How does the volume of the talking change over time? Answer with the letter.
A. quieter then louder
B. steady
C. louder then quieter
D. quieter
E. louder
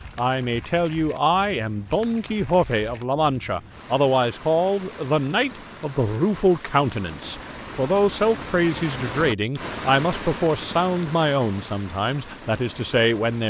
B.